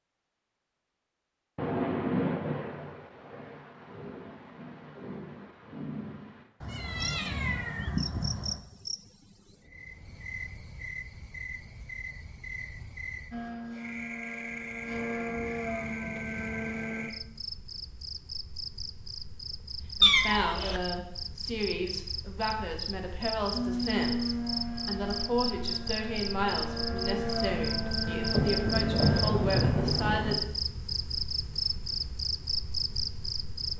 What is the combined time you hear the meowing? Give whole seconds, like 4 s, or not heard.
3 s.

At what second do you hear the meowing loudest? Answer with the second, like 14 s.
20 s.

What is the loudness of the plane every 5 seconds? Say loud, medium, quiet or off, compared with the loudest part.
off, off, medium, loud, loud, loud, off.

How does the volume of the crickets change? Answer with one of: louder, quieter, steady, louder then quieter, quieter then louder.
louder.